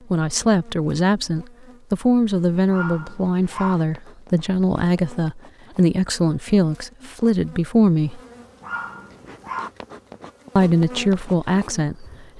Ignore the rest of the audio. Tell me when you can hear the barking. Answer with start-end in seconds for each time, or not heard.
2.6-3.8, 8.6-9.7.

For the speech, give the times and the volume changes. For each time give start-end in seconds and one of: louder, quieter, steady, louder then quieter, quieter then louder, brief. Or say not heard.
0.1-8.2 steady
10.6-12.3 brief.